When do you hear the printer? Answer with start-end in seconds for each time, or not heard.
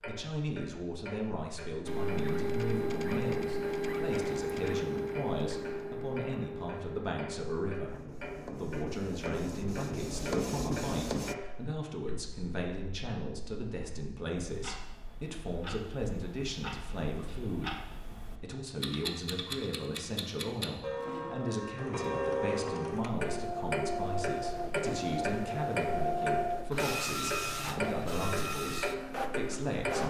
1.9-11.3, 21.8-30.0.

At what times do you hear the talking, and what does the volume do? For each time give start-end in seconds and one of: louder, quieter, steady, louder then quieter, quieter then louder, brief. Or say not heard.
0.1-30.0 steady.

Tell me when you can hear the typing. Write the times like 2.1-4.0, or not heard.
not heard.